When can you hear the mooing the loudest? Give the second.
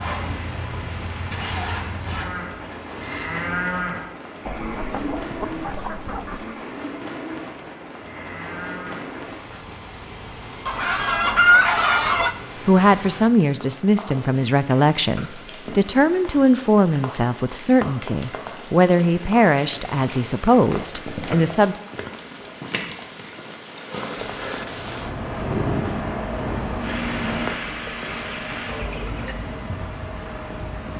4 s.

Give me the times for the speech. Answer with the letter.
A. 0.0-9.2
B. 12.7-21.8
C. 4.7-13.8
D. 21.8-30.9
B.